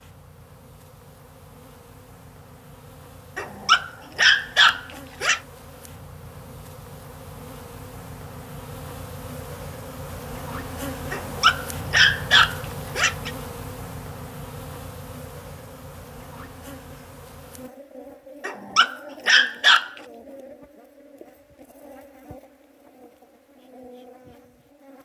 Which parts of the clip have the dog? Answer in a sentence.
You can hear the dog from 3.4 to 5.4 s, from 11.1 to 13.3 s and from 18.4 to 19.9 s.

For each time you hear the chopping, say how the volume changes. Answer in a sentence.
The chopping can't be heard in this clip.